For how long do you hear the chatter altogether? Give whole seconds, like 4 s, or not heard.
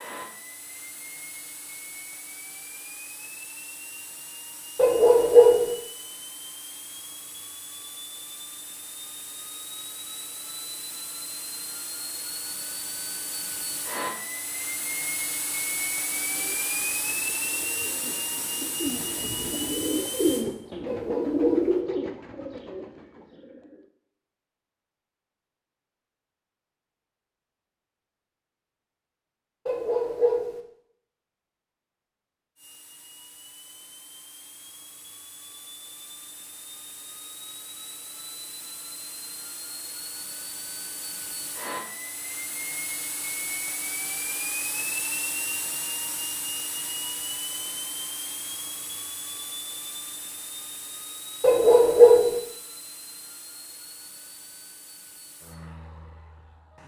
not heard.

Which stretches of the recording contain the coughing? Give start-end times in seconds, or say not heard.
not heard.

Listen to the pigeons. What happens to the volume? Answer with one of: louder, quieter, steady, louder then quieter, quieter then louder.
louder then quieter.